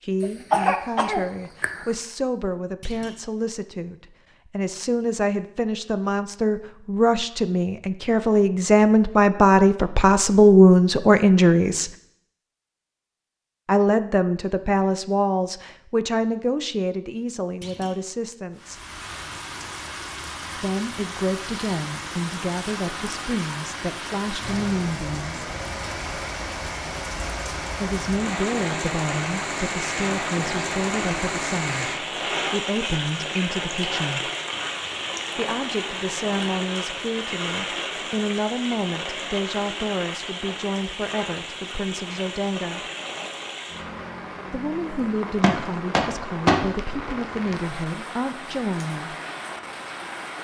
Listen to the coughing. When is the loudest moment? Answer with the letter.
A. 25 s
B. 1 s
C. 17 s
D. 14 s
B.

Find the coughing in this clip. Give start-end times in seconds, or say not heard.
0.2-1.9.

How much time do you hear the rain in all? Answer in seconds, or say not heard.
32 s.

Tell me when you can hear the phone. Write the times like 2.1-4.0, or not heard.
not heard.